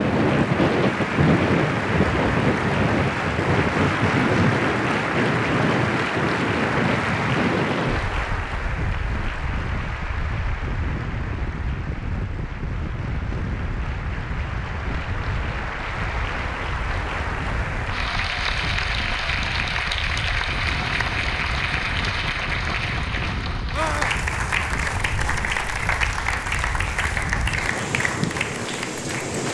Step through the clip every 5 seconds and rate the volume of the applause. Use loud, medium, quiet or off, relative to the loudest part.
loud, loud, medium, loud, loud, loud.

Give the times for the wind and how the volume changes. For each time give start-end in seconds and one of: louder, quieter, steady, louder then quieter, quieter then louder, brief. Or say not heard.
0.0-29.4 quieter.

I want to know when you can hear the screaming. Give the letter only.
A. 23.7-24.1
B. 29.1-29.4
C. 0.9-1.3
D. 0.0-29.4
A.